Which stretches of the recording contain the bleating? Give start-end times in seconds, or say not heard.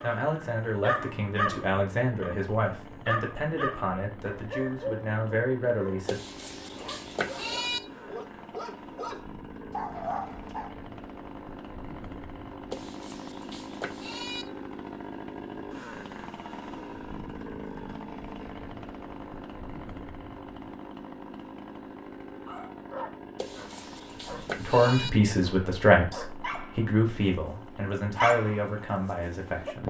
6.0-7.8, 12.7-14.4, 23.4-25.1.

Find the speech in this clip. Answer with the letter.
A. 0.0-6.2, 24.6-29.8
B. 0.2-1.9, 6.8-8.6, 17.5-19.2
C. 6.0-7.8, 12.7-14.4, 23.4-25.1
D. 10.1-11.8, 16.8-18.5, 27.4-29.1
A.